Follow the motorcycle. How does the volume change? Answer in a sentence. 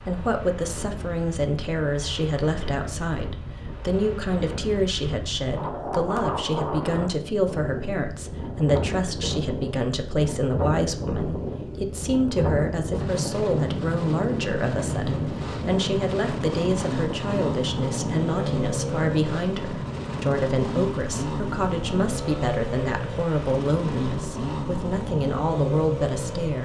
The loudness of the motorcycle stays about the same.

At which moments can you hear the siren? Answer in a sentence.
You can't hear the siren here.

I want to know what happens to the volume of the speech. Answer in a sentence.
The volume of the speech stays about the same.